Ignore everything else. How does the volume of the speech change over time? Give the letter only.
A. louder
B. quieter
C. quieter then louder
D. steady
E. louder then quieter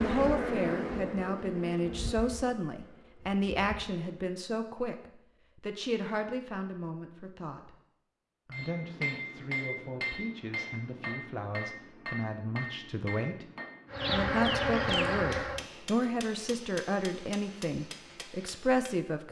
C.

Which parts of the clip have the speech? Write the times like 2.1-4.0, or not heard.
0.0-7.8, 8.4-13.4, 14.1-19.2.